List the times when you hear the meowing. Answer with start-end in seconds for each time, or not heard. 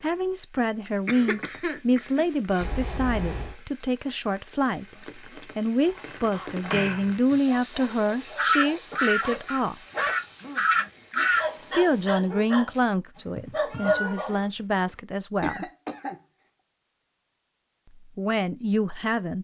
2.6-3.5, 13.2-14.9.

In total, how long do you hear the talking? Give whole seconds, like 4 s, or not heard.
15 s.